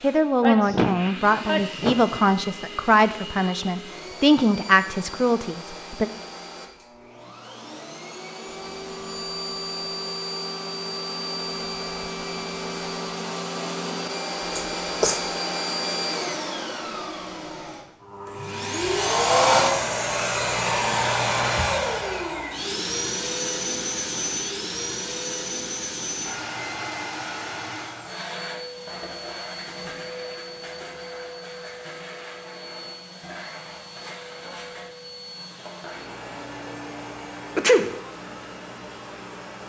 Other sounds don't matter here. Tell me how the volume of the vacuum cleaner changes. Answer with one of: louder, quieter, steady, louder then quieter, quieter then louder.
louder then quieter.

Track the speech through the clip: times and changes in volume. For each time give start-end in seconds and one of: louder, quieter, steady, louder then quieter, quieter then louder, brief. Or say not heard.
0.0-6.1 steady.